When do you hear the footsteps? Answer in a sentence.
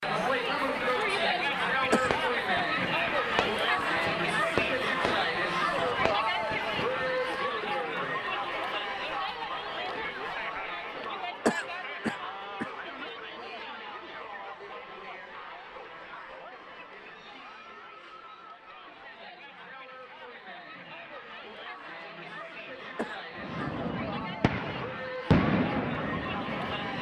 You can't hear the footsteps here.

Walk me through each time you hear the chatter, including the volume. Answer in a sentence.
You can hear the chatter from 0.0 to 26.9 s, getting quieter then louder.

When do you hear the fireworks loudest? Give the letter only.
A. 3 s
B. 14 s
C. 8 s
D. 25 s
D.